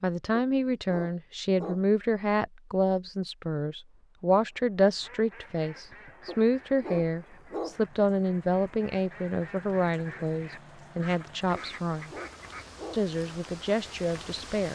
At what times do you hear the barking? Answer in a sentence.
The barking can be heard from 0.3 to 1.9 s, from 6.2 to 7.8 s and from 11.6 to 13.1 s.